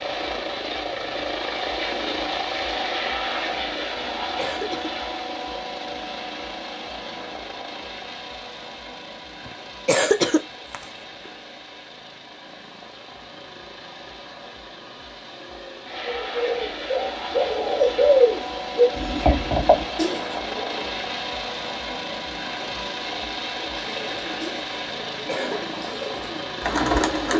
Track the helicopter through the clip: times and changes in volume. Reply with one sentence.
The helicopter can be heard from 0.0 to 27.3 s, getting quieter then louder.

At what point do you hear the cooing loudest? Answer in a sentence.
The loudest moment of the cooing is at 18 seconds.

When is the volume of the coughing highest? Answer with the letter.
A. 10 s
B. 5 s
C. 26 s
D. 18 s
A.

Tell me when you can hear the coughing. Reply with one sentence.
You can hear the coughing from 4.0 to 4.9 s, from 9.4 to 10.8 s and from 24.9 to 25.7 s.